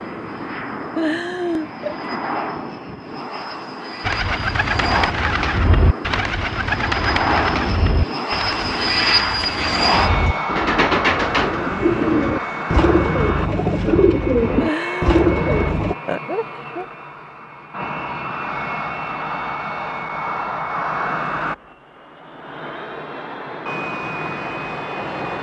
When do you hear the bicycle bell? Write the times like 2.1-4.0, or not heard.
not heard.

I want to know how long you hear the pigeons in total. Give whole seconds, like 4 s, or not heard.
12 s.